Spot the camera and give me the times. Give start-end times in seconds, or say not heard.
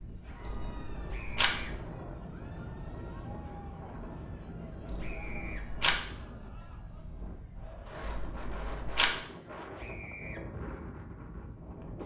0.5-1.6, 4.8-6.0, 8.0-9.1.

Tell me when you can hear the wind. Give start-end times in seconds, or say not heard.
0.0-12.0.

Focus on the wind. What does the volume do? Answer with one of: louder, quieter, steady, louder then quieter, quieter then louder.
steady.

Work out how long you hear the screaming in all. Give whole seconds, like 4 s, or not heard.
2 s.